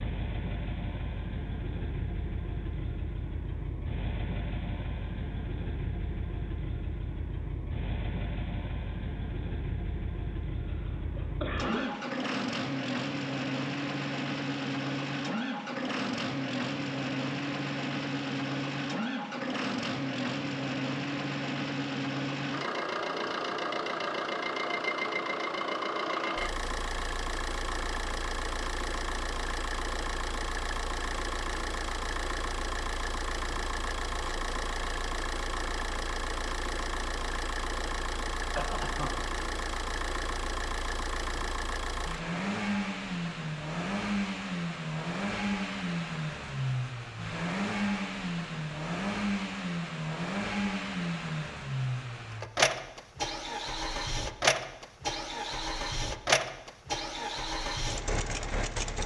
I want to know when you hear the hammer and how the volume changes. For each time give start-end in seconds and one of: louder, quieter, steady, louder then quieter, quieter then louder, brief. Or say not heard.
not heard.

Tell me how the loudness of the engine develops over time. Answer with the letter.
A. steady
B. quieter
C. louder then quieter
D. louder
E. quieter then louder
D.